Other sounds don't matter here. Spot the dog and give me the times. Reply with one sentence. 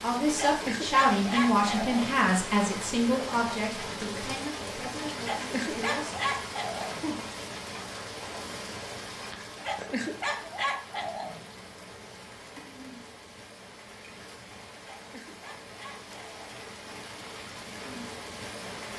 You can hear the dog from 0.3 to 2.1 s, from 5.2 to 7.0 s, from 9.6 to 11.4 s and from 14.8 to 16.4 s.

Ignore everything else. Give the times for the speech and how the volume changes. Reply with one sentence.
You can hear the speech from 0.0 to 6.2 s, getting quieter.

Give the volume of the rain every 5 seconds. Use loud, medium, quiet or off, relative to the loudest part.
loud, loud, medium, medium.